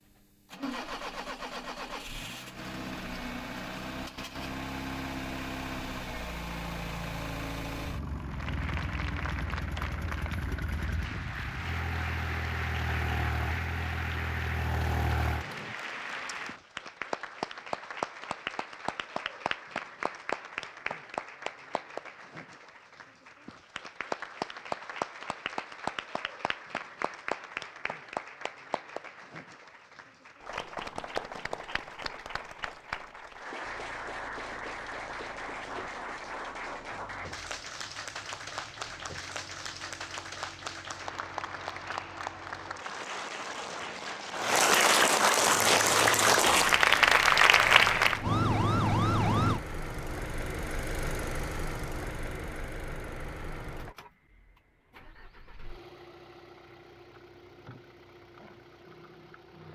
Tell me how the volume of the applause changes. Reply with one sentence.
The loudness of the applause goes up.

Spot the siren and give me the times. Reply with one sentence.
The siren can be heard from 45.4 to 49.6 s.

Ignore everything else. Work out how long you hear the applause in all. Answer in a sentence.
The applause can be heard for 40 seconds in total.